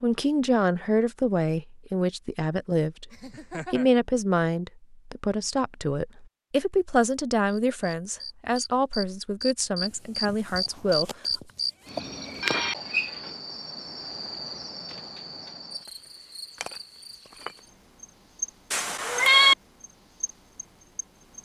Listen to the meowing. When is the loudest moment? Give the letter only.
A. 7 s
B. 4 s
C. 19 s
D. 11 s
C.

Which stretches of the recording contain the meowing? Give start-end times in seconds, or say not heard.
3.1-3.9, 9.9-12.1, 18.7-19.6.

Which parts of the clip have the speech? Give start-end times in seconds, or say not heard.
0.0-3.1, 3.7-11.1.